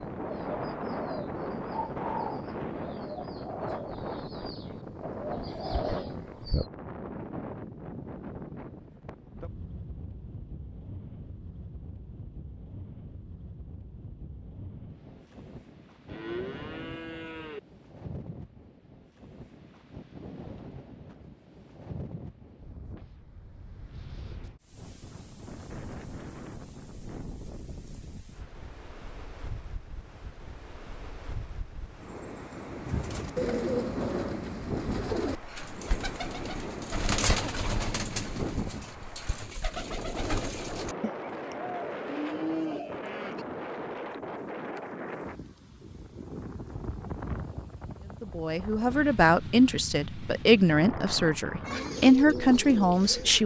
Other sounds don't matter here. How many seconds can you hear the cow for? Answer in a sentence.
The cow can be heard for 3 seconds in total.